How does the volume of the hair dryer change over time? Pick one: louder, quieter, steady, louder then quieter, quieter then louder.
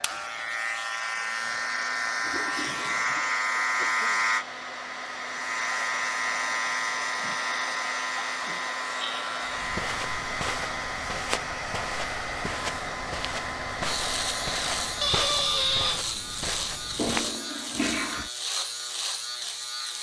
louder.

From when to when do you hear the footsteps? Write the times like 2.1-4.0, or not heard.
9.4-17.4.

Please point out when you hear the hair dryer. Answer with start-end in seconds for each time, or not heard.
0.0-15.2.